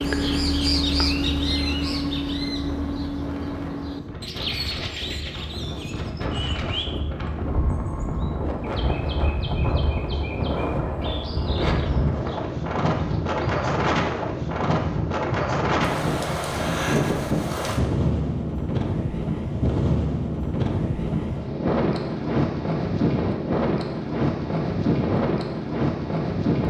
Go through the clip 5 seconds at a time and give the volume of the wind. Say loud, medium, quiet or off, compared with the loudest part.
quiet, medium, loud, loud, loud, loud.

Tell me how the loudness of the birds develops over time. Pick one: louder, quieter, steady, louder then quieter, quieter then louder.
quieter.